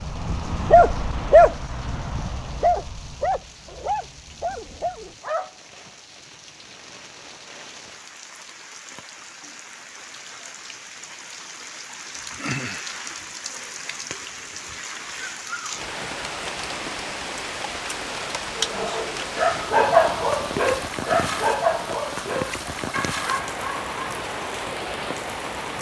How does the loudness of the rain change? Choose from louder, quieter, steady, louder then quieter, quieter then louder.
louder.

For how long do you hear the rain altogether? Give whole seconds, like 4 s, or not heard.
26 s.